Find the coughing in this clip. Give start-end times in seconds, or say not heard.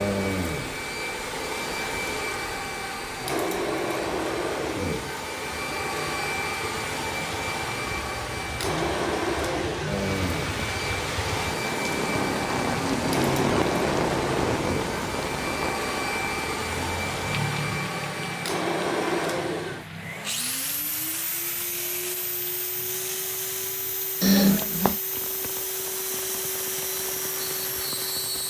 24.2-25.0.